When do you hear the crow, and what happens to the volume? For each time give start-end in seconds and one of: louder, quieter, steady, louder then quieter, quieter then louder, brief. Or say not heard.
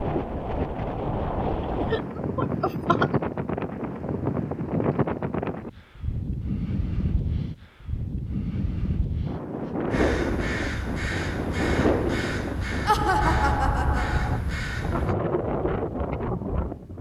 9.9-15.2 steady.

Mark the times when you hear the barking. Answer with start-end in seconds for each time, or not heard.
not heard.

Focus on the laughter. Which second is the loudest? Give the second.
13 s.